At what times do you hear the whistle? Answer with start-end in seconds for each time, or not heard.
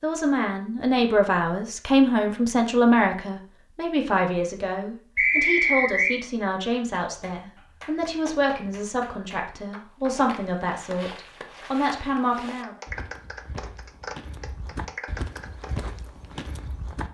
5.2-6.2.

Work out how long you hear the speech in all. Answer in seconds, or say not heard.
13 s.